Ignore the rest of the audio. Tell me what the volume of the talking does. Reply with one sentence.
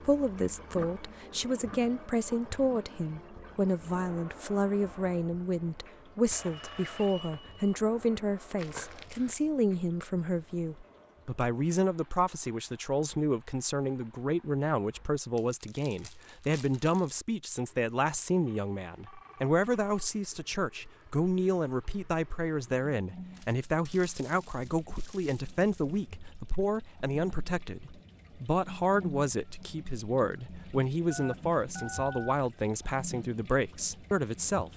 The loudness of the talking stays about the same.